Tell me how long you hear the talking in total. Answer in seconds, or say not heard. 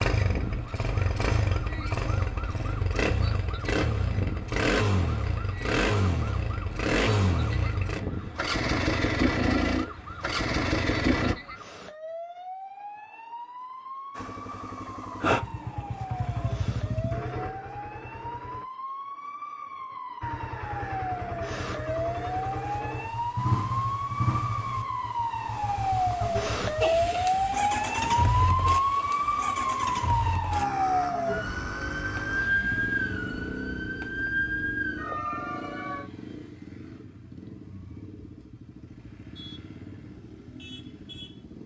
not heard.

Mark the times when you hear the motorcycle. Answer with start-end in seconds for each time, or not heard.
0.0-11.3, 14.2-18.6, 20.2-41.6.